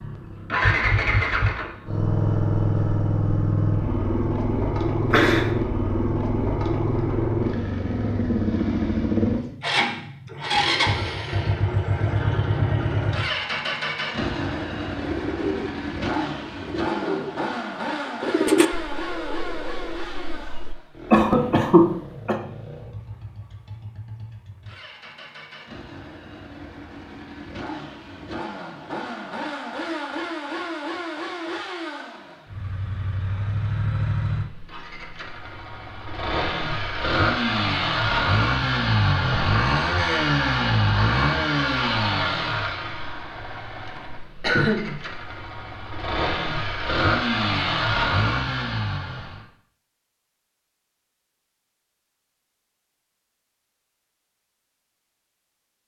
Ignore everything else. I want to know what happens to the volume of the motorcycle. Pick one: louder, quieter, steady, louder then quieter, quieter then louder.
quieter then louder.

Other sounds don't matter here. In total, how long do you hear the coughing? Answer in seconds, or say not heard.
3 s.